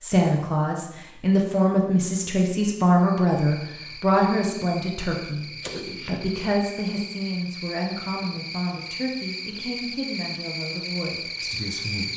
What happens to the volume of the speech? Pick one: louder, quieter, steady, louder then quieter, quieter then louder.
quieter.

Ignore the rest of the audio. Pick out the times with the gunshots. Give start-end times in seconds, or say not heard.
5.4-6.5.